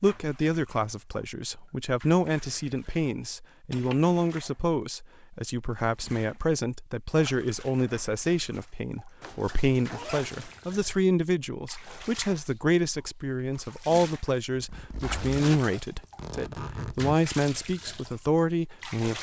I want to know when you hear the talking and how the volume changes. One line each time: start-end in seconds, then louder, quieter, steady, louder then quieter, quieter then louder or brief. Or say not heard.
0.0-19.1 steady.